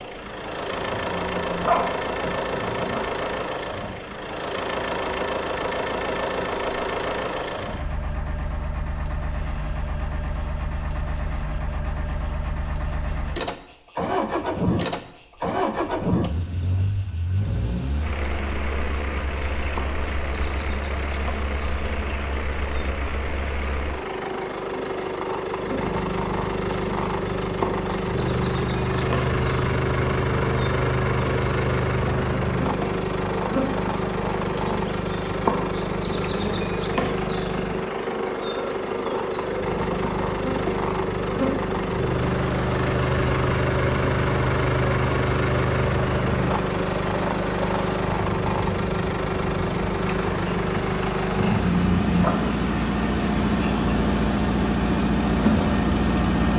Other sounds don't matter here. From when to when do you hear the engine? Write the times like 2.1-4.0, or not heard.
0.0-56.5.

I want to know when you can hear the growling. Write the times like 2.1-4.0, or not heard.
0.8-3.0, 51.4-52.4.